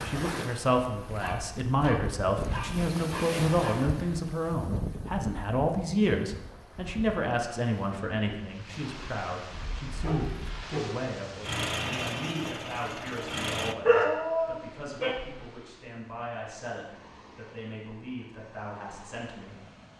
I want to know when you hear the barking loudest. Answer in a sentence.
The volume of the barking peaks at 14 seconds.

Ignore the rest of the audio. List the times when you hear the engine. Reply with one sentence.
The engine can be heard from 9.5 to 13.8 s.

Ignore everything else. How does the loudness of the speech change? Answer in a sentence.
The volume of the speech goes down.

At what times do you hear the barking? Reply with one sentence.
You can hear the barking from 1.2 to 3.8 s, from 9.8 to 11.1 s and from 13.8 to 15.2 s.